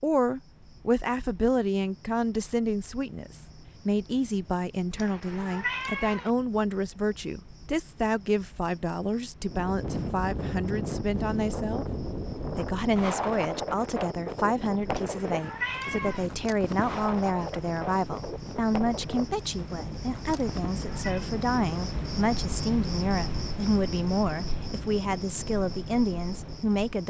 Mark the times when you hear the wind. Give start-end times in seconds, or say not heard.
9.4-26.8.